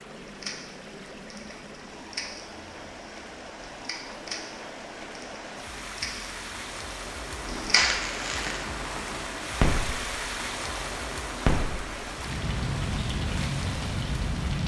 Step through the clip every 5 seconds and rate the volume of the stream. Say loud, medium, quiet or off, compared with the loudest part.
medium, loud, loud.